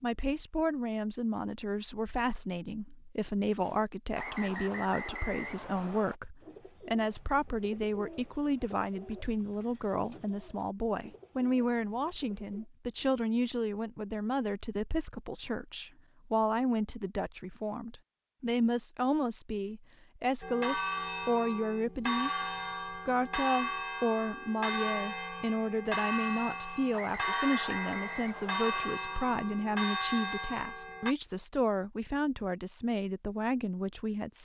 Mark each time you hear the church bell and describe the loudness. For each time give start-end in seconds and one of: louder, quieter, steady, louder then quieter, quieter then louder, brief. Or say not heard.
20.4-31.1 steady.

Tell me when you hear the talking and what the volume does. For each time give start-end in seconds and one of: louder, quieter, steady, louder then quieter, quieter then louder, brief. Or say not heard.
0.0-34.4 steady.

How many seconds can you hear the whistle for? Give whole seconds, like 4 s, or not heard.
4 s.